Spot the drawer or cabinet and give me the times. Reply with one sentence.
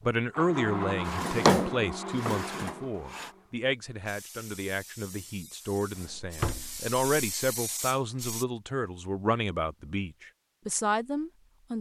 You can hear the drawer or cabinet from 1.1 to 3.3 s and from 6.0 to 6.9 s.